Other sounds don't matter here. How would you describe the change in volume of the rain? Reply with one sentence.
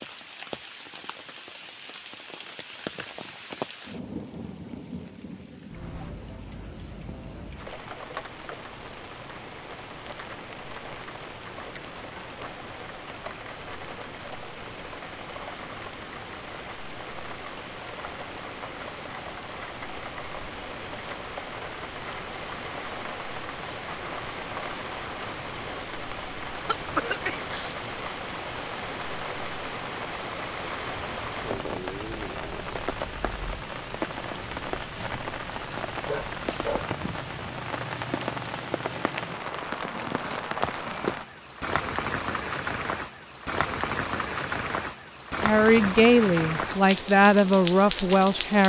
The volume of the rain goes up.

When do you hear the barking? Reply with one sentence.
The barking can be heard from 36.0 to 36.9 s.